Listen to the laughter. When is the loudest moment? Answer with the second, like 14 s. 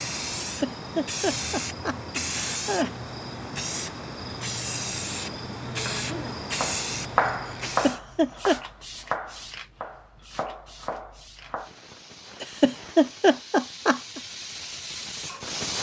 13 s.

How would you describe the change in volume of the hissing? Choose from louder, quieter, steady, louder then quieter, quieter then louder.
quieter then louder.